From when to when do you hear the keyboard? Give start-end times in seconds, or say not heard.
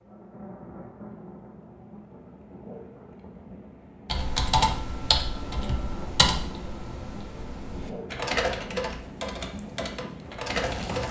4.0-11.0.